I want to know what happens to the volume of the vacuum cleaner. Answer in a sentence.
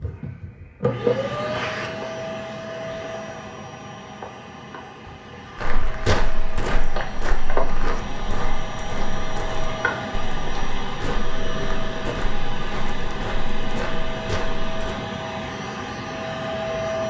The volume of the vacuum cleaner goes down, then up.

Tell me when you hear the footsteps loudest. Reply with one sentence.
The volume of the footsteps peaks at 6 seconds.